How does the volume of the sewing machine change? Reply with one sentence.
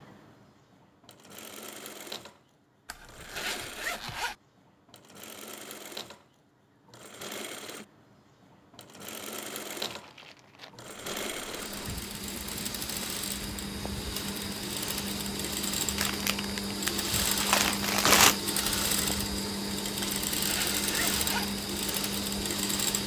The loudness of the sewing machine goes up.